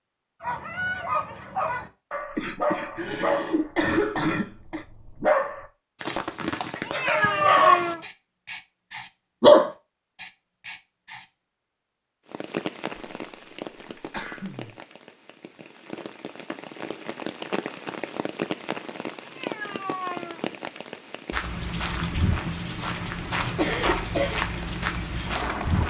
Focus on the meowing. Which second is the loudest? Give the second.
8 s.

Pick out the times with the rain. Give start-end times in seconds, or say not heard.
12.2-25.8.